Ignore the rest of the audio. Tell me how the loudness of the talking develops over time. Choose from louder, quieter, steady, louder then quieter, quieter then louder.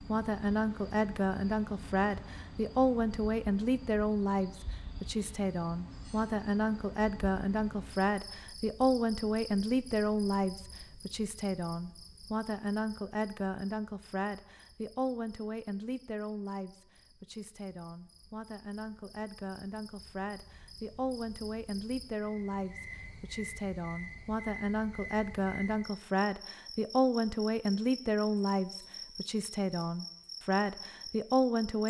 quieter then louder.